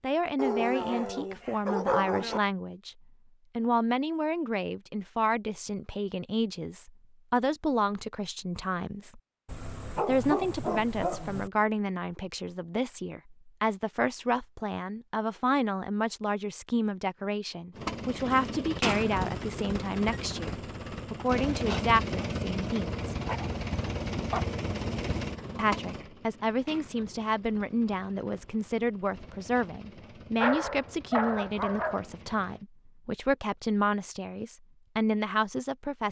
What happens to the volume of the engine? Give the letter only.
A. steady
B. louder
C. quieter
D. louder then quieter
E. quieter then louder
C.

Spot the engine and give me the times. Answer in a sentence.
You can hear the engine from 17.8 to 32.6 s.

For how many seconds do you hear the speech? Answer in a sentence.
The speech can be heard for 32 seconds in total.